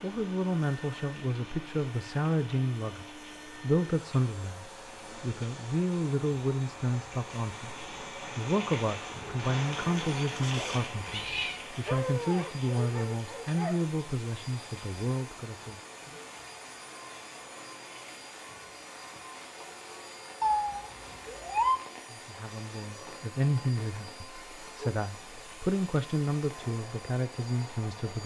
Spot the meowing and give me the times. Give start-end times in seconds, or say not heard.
10.3-11.6, 20.4-21.8.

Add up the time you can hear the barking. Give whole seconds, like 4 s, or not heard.
2 s.